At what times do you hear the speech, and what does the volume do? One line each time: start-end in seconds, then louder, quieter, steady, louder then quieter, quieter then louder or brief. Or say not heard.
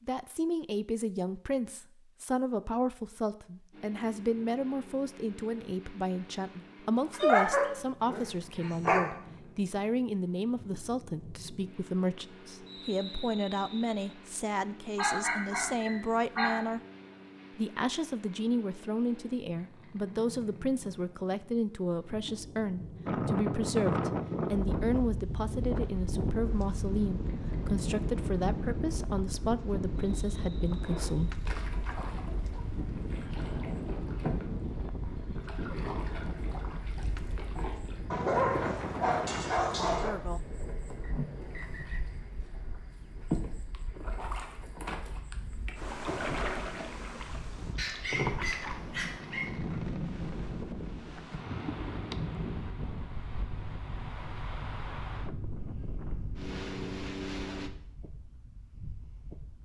0.0-16.8 steady
17.6-31.4 steady
39.9-40.5 brief.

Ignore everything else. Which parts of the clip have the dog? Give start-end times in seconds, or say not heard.
7.1-9.0, 14.9-16.6, 38.1-40.1, 47.8-49.8.